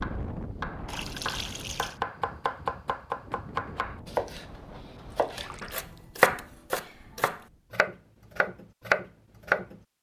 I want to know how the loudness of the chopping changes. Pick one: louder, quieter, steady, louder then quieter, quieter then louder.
louder.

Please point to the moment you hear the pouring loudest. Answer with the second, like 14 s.
1 s.